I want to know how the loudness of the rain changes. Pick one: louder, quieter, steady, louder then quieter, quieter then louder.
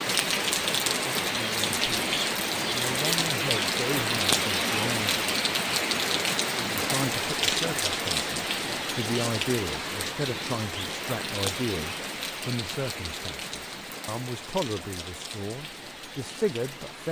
quieter.